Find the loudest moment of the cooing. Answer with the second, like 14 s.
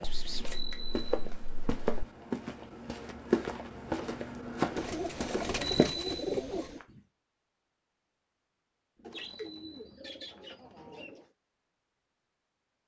6 s.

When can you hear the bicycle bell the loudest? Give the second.
6 s.